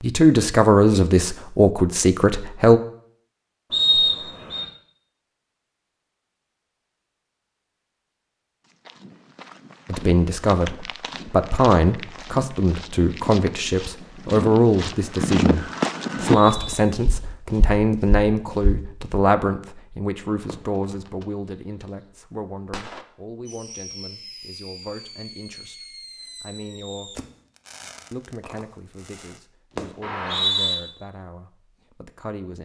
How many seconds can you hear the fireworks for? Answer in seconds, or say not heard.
10 s.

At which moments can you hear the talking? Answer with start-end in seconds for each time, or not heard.
0.0-2.8, 9.8-27.2, 28.1-32.5.